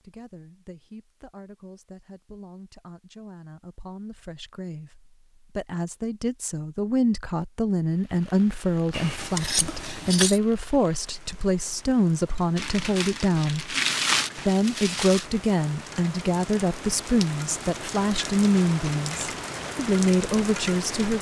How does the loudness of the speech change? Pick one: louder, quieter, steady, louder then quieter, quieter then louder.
louder.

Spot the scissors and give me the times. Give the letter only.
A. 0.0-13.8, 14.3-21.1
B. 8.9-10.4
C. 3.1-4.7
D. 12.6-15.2
B.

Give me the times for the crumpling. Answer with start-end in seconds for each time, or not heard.
12.6-15.2.